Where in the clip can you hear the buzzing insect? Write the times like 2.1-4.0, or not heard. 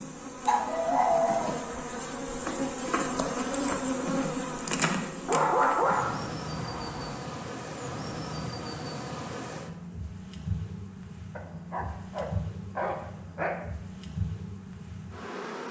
0.0-15.6.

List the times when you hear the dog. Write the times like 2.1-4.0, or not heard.
0.5-1.9, 5.2-7.2, 11.3-13.6.